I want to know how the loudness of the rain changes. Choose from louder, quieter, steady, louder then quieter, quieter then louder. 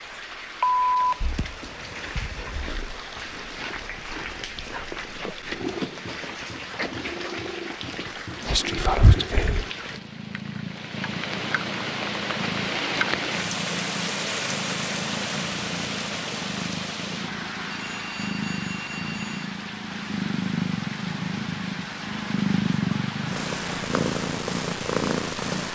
louder then quieter.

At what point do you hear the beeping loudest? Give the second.
1 s.